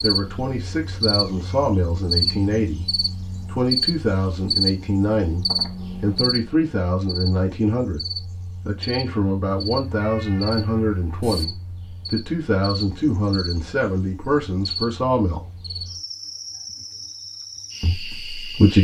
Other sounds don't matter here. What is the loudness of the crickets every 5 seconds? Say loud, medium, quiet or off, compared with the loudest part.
loud, medium, medium, medium.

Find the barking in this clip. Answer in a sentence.
You can't hear the barking here.